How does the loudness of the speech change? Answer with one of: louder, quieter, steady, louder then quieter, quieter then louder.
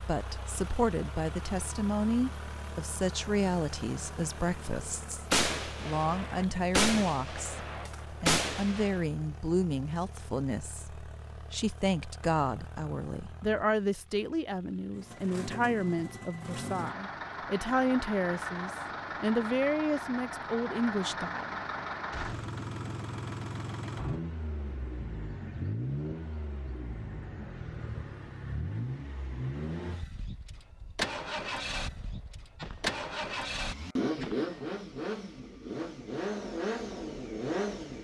steady.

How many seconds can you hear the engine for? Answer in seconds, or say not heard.
38 s.